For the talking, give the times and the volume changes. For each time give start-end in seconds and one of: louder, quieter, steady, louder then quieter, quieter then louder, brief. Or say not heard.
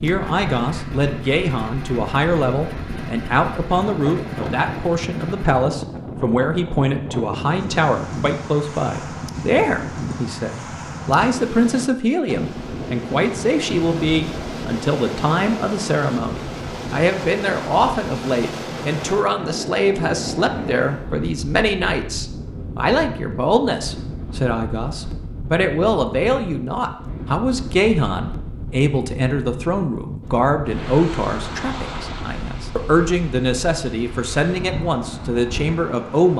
0.0-36.3 steady.